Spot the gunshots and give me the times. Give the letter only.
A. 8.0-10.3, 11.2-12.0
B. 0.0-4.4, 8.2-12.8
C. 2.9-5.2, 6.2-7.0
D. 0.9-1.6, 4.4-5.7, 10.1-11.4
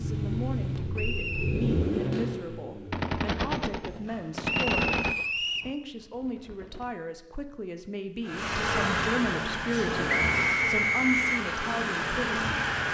C.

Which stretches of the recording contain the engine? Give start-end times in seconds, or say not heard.
0.0-4.4, 8.2-12.8.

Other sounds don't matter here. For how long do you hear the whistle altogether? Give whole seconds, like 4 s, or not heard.
3 s.